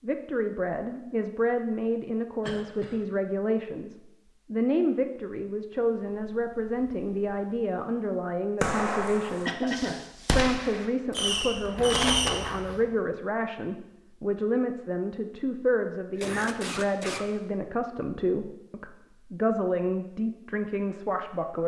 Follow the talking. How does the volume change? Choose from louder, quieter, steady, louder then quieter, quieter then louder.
steady.